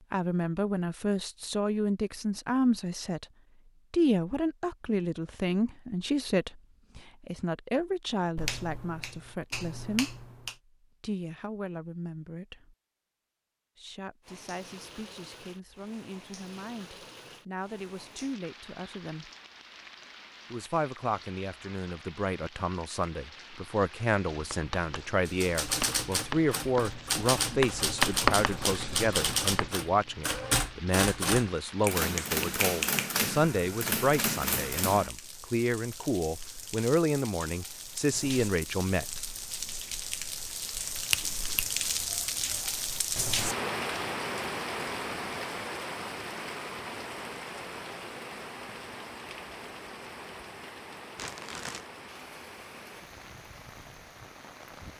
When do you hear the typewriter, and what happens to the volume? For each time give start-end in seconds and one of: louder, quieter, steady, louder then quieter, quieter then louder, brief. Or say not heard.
25.2-35.1 steady.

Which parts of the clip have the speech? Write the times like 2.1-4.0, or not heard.
0.1-3.2, 3.9-10.2, 11.0-12.8, 13.8-19.3, 20.5-39.2.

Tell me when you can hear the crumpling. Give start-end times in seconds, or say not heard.
51.1-51.9.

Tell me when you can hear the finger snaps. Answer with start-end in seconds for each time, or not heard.
8.3-10.6, 31.8-33.2, 41.1-41.6.